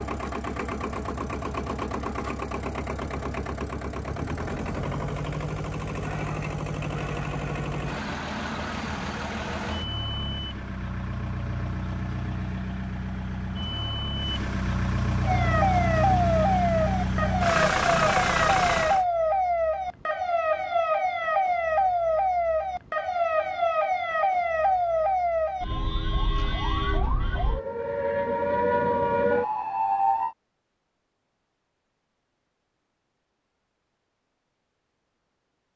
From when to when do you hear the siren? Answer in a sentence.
You can hear the siren from 15.2 to 30.4 s.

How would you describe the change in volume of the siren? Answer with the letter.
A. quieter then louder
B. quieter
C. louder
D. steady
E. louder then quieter
D.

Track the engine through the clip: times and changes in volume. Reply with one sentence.
You can hear the engine from 0.0 to 19.1 s, getting louder.